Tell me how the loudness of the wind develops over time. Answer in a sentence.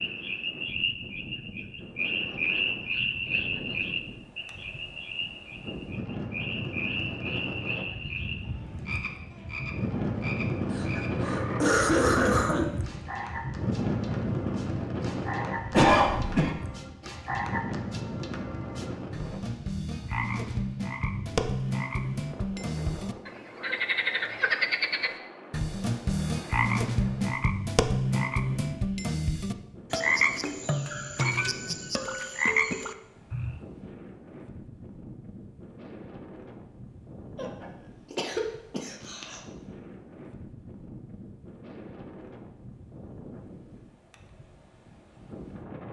The loudness of the wind goes up, then down.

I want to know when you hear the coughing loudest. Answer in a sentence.
The volume of the coughing peaks at 16 seconds.